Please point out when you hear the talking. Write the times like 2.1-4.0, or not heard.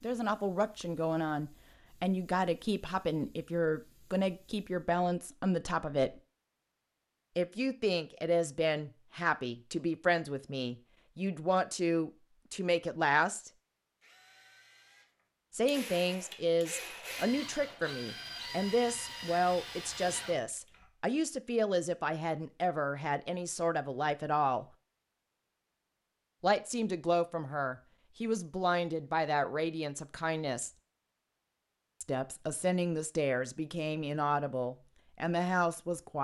0.0-6.2, 7.3-13.5, 15.5-24.6, 26.4-30.7, 32.0-36.1.